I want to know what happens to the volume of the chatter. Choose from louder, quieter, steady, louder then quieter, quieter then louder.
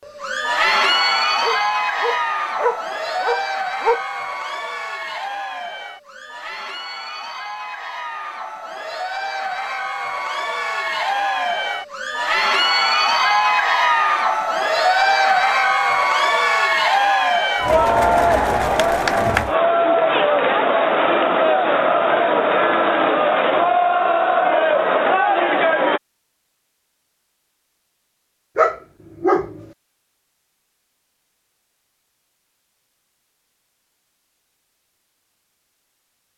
quieter then louder.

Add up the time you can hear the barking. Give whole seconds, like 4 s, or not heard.
4 s.